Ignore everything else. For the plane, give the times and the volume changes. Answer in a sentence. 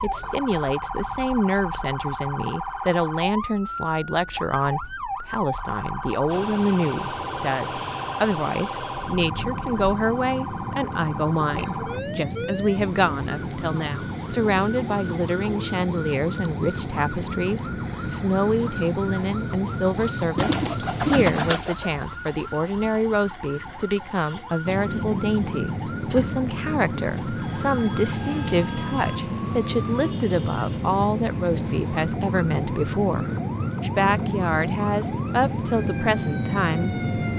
You can hear the plane from 6.2 to 21.6 s, at a steady volume; and from 24.6 to 37.3 s, at a steady volume.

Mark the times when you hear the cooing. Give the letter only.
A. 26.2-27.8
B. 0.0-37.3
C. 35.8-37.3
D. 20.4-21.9
D.